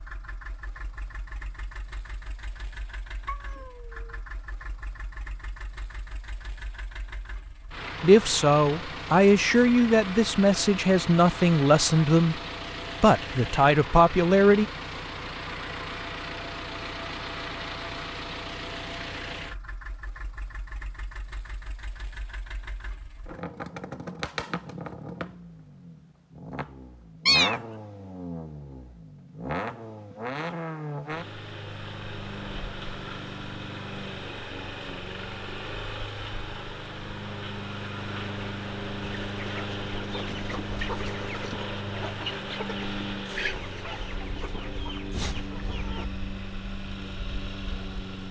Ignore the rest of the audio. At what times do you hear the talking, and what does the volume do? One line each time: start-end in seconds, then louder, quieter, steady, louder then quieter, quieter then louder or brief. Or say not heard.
8.0-12.4 steady
13.0-14.7 brief.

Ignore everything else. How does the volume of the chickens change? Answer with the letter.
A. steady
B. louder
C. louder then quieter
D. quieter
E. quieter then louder
A.